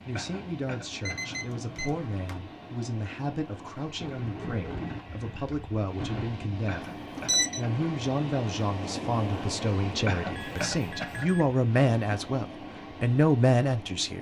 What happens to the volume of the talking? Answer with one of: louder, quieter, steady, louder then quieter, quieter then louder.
louder.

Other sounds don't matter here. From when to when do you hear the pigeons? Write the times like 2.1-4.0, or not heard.
4.0-6.2.